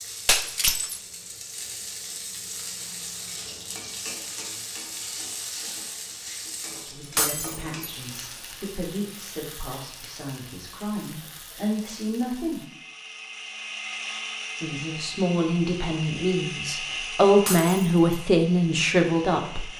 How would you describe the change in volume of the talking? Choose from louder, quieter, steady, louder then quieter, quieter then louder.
louder.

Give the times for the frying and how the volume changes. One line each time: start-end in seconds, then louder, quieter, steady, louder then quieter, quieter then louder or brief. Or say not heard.
0.0-12.7 quieter.